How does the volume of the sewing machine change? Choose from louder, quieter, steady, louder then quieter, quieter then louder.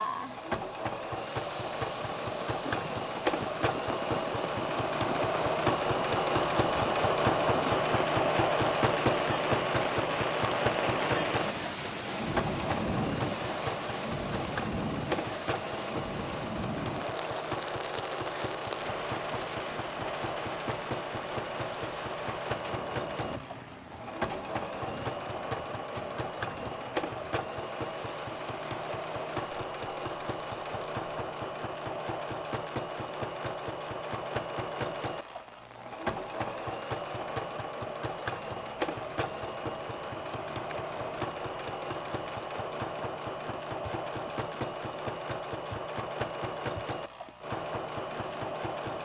quieter.